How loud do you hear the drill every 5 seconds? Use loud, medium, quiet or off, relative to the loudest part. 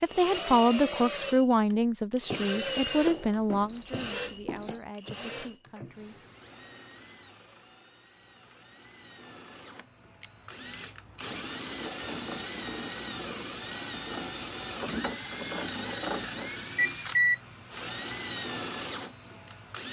loud, quiet, loud, loud.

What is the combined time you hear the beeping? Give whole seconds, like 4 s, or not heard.
3 s.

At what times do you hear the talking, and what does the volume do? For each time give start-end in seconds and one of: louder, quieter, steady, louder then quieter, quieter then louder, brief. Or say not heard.
0.0-6.2 quieter.